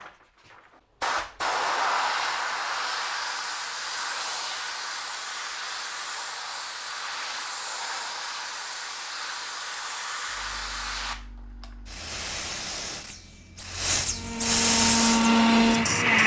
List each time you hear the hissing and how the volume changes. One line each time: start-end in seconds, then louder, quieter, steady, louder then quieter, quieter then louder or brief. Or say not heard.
0.0-16.2 quieter then louder.